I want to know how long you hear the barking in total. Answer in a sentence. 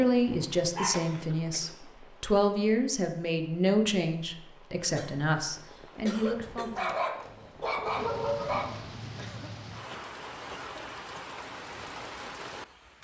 The barking can be heard for 3 seconds in total.